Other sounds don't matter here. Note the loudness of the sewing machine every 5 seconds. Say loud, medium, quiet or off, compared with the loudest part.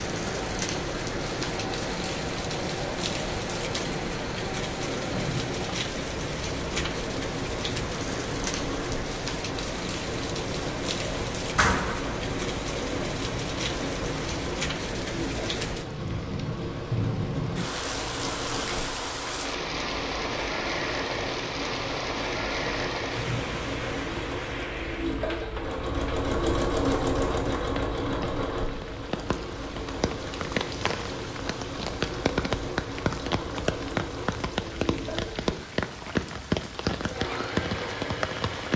medium, medium, medium, medium, medium, loud, medium, medium.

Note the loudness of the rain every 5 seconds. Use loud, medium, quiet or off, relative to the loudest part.
loud, loud, loud, loud, loud, medium, loud, loud.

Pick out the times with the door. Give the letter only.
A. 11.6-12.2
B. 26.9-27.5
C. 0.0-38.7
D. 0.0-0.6
A.